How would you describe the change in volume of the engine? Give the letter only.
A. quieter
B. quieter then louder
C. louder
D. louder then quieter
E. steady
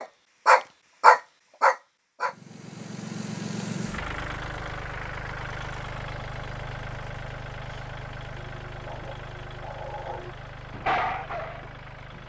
A.